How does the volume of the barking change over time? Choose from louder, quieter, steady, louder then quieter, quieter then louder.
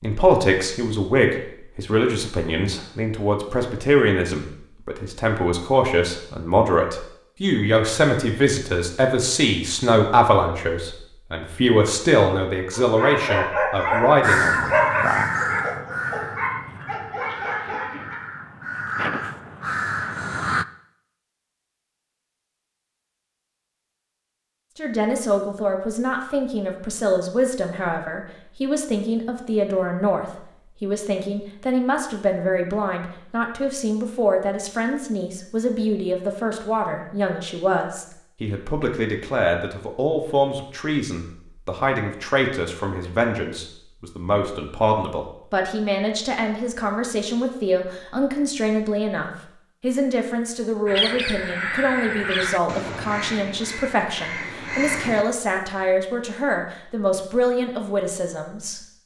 quieter.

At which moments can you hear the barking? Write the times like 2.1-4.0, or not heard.
12.8-18.2.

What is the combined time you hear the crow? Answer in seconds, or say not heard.
11 s.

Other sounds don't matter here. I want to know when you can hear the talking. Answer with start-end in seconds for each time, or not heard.
0.0-14.7, 24.8-58.8.